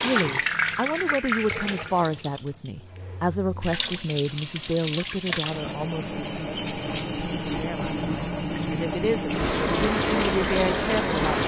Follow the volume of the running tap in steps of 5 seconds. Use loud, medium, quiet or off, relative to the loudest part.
medium, loud, loud.